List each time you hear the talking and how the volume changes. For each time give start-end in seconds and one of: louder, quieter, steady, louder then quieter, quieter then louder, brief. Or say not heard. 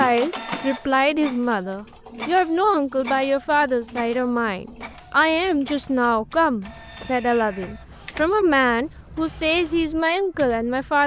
0.0-11.0 steady.